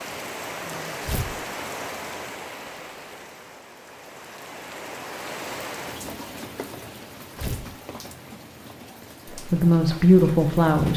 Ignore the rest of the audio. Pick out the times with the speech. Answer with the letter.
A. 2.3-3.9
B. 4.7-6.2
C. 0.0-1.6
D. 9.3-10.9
D.